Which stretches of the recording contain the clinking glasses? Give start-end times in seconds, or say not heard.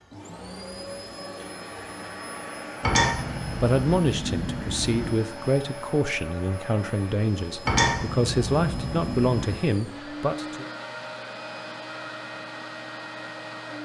2.8-5.2, 7.7-9.6.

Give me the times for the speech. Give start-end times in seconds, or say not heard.
3.6-10.7.